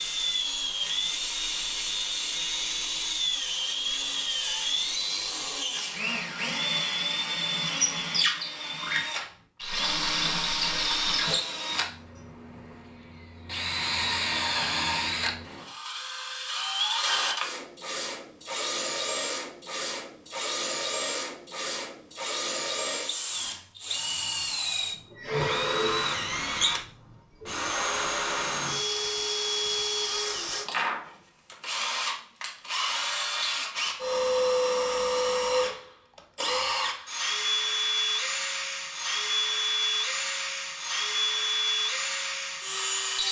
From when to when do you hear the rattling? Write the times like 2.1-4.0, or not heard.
9.6-11.2.